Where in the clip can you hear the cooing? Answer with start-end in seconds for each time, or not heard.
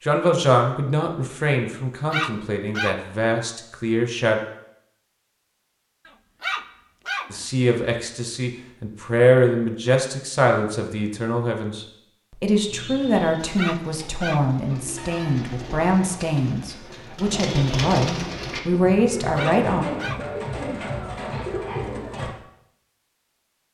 12.7-22.4.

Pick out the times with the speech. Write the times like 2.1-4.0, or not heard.
0.0-4.4, 7.3-19.9.